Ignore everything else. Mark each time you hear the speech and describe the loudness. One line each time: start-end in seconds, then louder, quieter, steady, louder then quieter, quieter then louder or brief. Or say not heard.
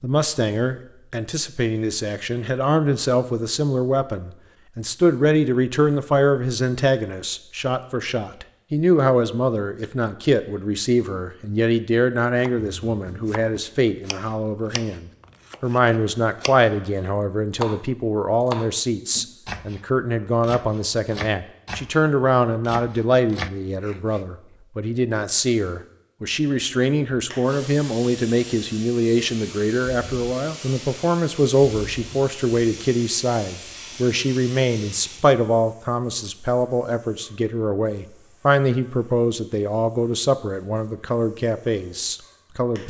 0.0-42.8 steady.